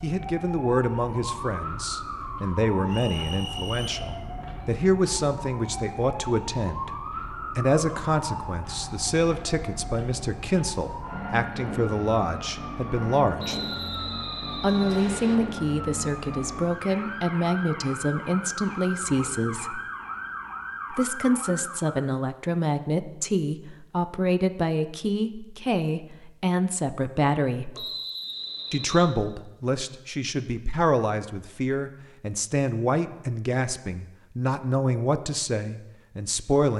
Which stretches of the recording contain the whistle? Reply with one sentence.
You can hear the whistle from 2.9 to 4.0 s, from 13.3 to 15.3 s and from 27.8 to 29.1 s.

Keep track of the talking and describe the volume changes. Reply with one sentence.
The volume of the talking stays about the same.